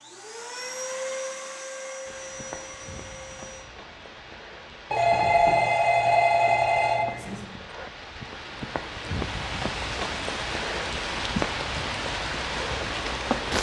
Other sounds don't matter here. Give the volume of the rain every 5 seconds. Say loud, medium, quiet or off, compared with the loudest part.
quiet, medium, loud.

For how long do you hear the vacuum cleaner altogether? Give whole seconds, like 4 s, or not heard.
4 s.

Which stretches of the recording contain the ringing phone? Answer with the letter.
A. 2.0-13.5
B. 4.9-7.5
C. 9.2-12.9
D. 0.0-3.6
B.